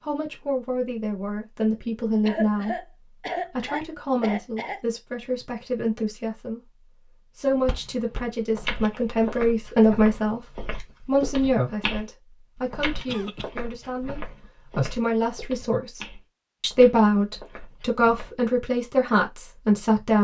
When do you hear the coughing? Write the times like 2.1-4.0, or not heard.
2.2-4.8, 13.1-13.5.